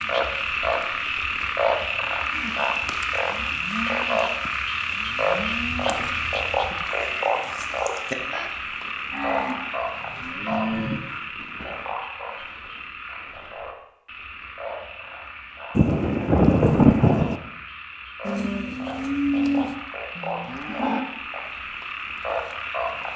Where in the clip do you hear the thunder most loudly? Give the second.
17 s.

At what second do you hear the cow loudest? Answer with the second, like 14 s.
19 s.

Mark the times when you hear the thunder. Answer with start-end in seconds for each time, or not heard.
15.8-17.4.